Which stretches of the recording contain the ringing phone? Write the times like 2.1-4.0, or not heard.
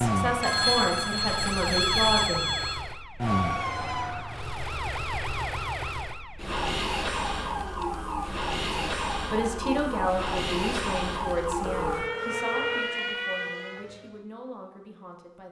0.4-2.8, 11.6-12.9.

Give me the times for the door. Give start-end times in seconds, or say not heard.
not heard.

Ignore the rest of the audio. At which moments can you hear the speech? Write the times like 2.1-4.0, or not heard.
0.0-2.5, 8.8-15.4.